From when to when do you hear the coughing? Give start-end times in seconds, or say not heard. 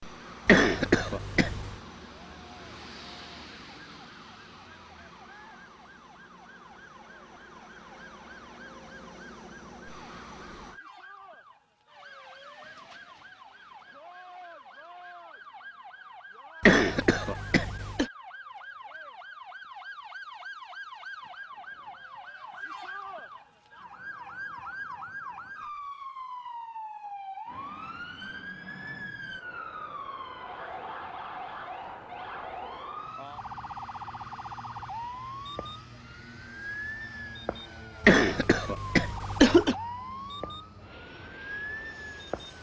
0.5-1.8, 16.6-18.1, 38.0-39.8.